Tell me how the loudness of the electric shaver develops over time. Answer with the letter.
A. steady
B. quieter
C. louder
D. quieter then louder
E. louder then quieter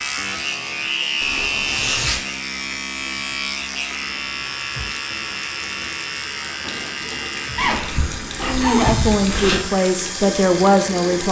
B.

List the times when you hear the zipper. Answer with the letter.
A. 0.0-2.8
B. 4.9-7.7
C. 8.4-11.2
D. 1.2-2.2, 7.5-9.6
D.